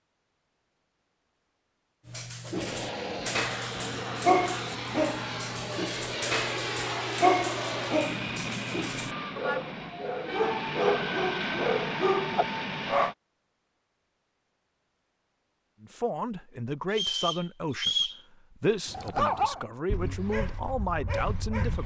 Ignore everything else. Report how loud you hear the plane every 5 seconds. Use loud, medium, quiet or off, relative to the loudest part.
loud, loud, loud, off, off.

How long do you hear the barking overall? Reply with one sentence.
You can hear the barking for 14 seconds altogether.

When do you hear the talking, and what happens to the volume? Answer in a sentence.
The talking can be heard from 15.8 to 21.8 s, at a steady volume.